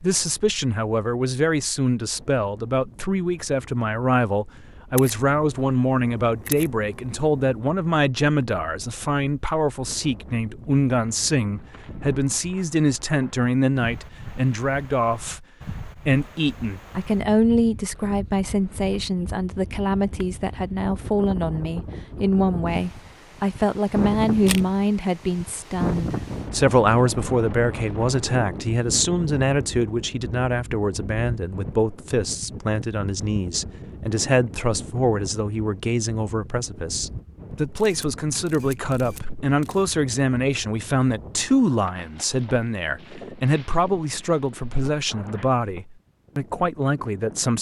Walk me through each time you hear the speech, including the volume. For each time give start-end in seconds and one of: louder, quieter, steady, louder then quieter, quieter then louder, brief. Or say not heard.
0.0-15.4 steady
16.1-47.5 steady.